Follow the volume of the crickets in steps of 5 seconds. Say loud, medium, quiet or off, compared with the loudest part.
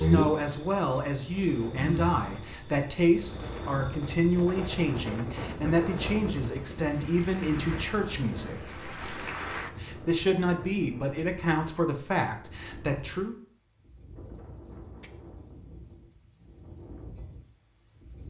loud, medium, loud, loud.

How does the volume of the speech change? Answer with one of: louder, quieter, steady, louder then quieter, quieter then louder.
steady.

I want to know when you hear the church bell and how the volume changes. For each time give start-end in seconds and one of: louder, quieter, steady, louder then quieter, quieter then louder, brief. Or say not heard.
not heard.